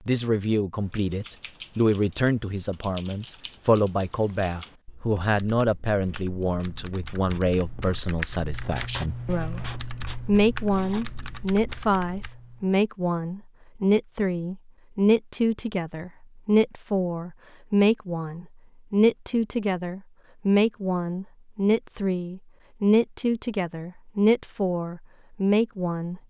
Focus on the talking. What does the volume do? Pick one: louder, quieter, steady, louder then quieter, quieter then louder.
steady.